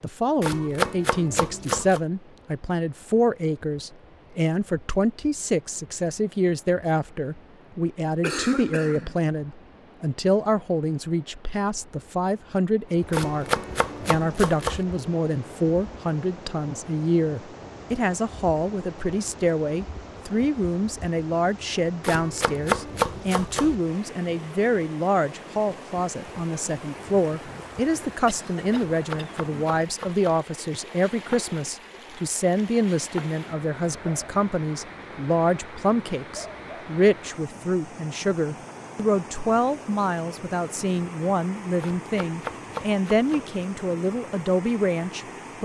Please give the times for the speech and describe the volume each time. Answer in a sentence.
The speech can be heard from 0.0 to 45.5 s, at a steady volume.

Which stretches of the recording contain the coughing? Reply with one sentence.
You can hear the coughing from 8.2 to 9.2 s and from 28.2 to 29.6 s.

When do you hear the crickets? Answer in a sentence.
You can't hear the crickets here.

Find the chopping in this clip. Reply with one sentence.
You can hear the chopping from 0.4 to 2.0 s, from 13.1 to 14.8 s, from 22.0 to 23.8 s, from 28.7 to 30.4 s and from 41.8 to 43.5 s.